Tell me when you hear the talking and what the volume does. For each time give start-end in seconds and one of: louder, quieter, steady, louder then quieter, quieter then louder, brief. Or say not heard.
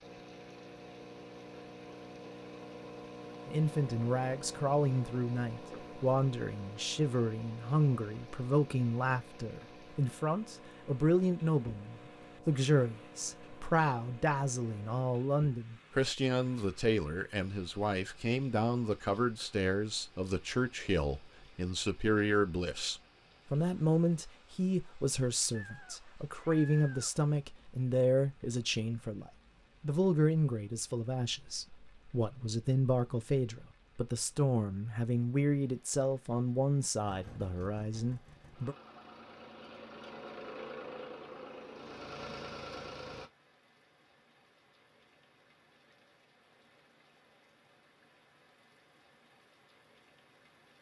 3.5-38.8 steady.